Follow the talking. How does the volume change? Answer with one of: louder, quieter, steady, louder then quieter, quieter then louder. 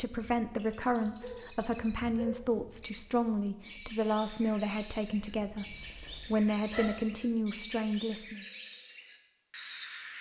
steady.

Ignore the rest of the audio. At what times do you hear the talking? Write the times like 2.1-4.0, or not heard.
0.0-8.4.